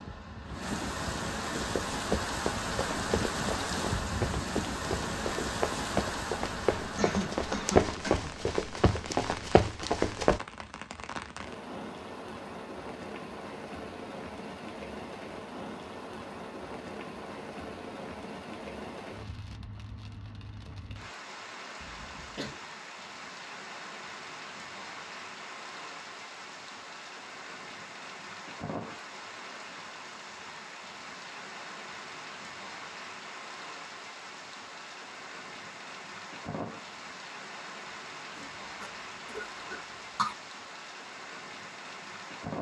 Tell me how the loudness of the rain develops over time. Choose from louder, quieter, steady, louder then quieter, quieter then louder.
quieter.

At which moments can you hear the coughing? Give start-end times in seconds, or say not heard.
7.0-8.3, 21.8-22.6, 38.8-40.4.